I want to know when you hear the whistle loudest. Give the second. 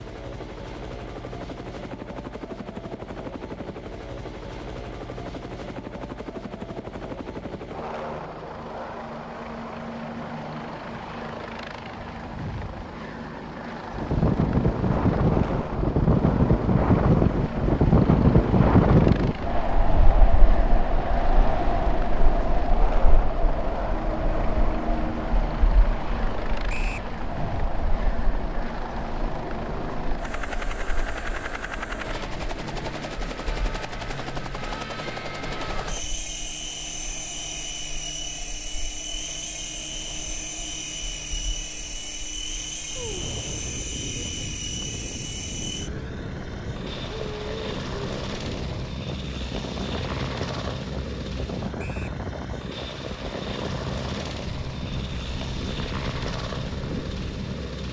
27 s.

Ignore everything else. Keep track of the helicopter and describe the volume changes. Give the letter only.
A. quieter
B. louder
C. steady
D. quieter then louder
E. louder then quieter
C.